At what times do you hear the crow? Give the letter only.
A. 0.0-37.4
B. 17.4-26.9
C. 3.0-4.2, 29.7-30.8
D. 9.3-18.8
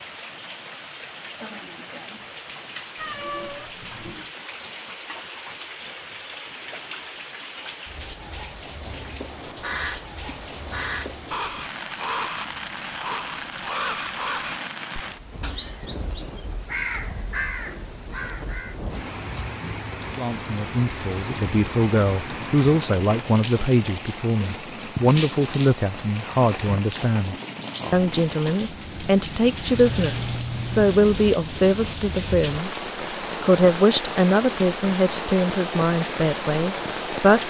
D.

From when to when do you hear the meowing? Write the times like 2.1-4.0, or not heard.
3.0-4.2, 29.7-30.8.